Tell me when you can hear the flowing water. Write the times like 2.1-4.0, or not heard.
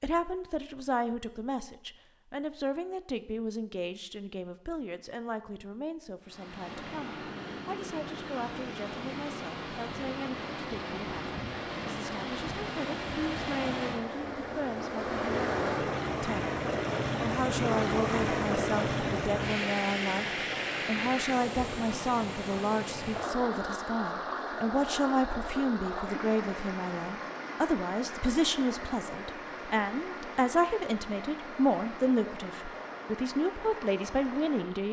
6.2-34.8.